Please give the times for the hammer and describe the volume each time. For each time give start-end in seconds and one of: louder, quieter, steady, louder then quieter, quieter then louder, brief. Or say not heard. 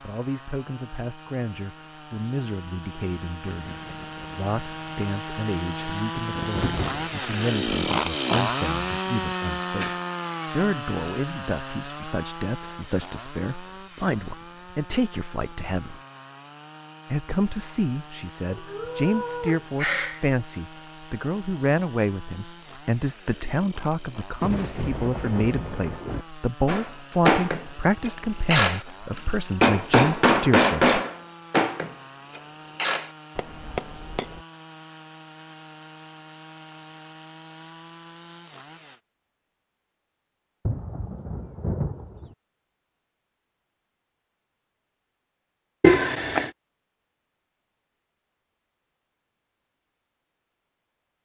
26.6-34.5 quieter.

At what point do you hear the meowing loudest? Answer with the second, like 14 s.
46 s.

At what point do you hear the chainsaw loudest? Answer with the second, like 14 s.
8 s.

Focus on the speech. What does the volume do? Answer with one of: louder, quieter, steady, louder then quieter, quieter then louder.
louder.